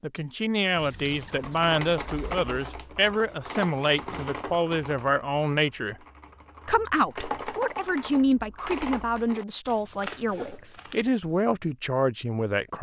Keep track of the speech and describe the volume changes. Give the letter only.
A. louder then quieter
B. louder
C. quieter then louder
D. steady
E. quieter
D.